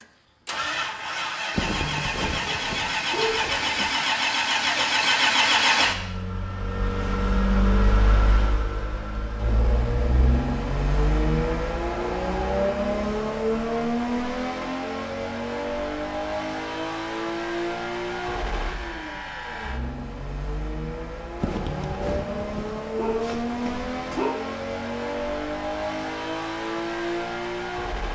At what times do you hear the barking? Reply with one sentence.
You can hear the barking from 1.5 to 4.0 s and from 21.4 to 24.4 s.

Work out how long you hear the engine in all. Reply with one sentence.
You can hear the engine for 28 seconds altogether.